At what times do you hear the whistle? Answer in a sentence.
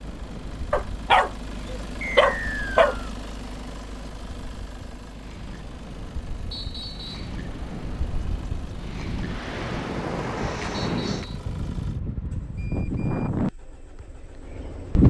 You can hear the whistle from 2.0 to 2.9 s, from 6.5 to 7.3 s and from 10.7 to 11.4 s.